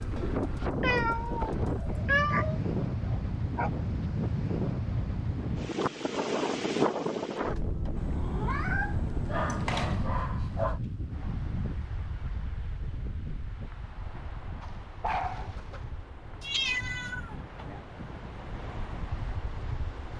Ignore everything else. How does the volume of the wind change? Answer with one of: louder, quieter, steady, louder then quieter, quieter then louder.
quieter.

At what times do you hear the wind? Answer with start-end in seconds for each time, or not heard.
0.0-20.1.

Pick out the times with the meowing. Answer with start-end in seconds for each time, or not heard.
0.8-2.6, 8.0-10.0, 16.4-17.4.